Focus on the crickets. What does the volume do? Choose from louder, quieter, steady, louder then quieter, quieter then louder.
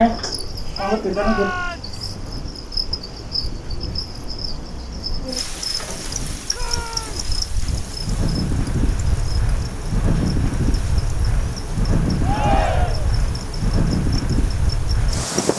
quieter.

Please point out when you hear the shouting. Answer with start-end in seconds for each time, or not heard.
0.8-1.9, 6.5-7.2, 12.2-13.2.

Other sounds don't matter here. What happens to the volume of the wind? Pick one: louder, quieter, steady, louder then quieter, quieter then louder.
louder.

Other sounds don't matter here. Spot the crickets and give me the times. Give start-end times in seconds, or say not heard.
0.0-15.2.